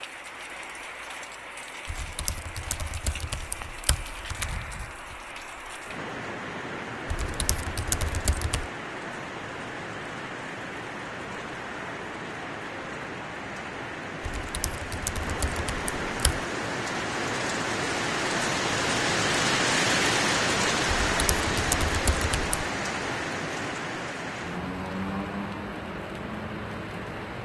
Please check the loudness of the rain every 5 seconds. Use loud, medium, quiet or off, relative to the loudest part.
quiet, medium, medium, loud, loud, medium.